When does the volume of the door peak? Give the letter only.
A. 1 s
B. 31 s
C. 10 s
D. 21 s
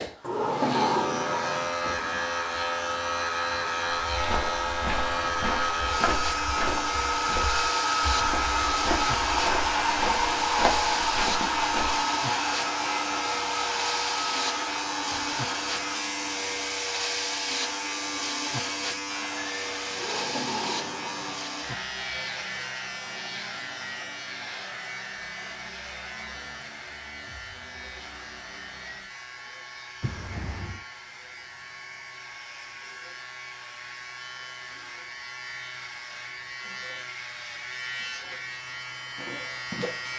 A.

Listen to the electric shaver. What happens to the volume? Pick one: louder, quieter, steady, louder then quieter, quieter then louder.
quieter.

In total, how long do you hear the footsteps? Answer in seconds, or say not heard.
8 s.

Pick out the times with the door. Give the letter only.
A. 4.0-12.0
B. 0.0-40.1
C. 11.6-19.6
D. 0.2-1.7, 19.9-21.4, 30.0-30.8
D.